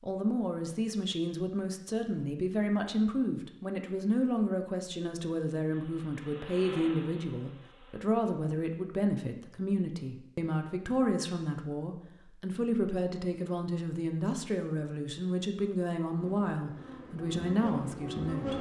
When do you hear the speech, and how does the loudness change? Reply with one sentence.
You can hear the speech from 0.0 to 18.5 s, at a steady volume.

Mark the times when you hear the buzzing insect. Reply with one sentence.
The buzzing insect can be heard from 5.7 to 8.0 s and from 16.1 to 18.5 s.